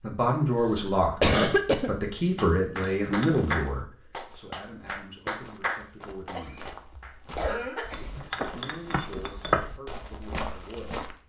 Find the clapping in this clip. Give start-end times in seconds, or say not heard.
2.4-8.0.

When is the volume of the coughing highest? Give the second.
1 s.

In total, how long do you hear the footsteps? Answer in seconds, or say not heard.
7 s.